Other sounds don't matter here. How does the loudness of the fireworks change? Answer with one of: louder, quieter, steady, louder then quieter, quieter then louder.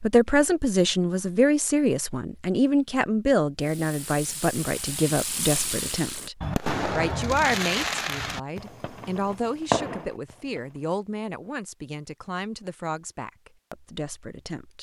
louder.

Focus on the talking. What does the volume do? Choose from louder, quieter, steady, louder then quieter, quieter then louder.
quieter.